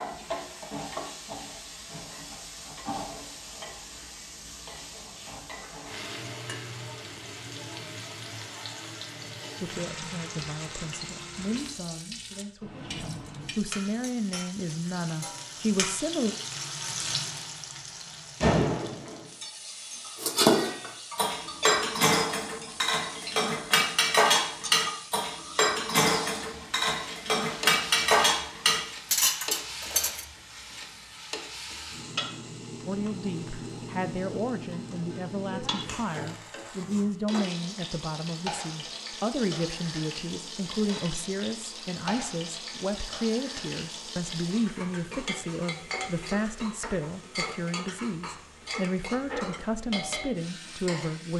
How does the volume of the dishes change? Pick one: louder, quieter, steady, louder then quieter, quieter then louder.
steady.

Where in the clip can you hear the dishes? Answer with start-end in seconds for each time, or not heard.
20.1-30.2.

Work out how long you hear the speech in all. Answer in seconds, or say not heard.
25 s.